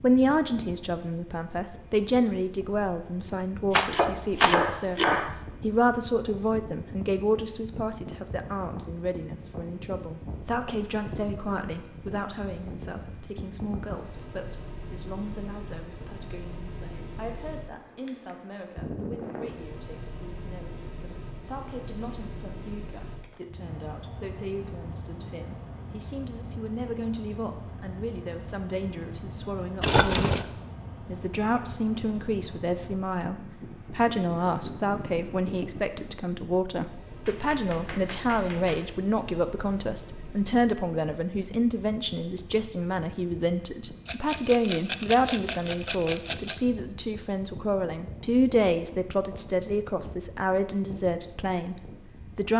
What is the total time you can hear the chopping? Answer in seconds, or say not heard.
3 s.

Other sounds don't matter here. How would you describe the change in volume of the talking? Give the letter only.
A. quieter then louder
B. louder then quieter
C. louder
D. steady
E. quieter
A.